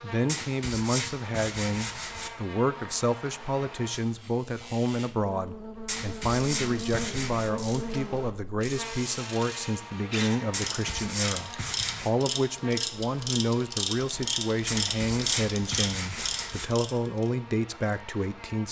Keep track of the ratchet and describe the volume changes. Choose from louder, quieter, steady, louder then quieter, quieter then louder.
louder.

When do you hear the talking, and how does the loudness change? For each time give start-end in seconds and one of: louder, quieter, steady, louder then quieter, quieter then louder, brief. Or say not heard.
0.0-18.6 steady.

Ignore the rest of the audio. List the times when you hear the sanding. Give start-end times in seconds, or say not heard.
0.2-2.3, 5.8-7.5, 10.5-12.1, 14.7-16.7.